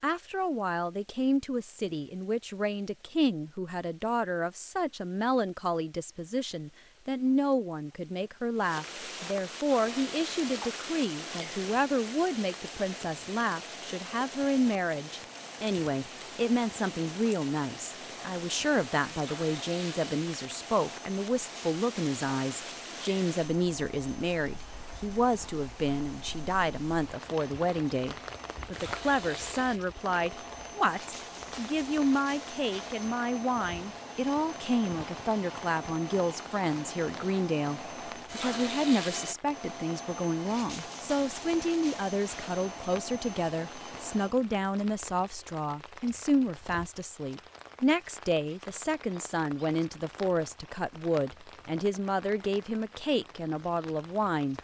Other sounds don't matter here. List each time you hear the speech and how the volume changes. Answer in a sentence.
The speech can be heard from 0.0 to 54.5 s, at a steady volume.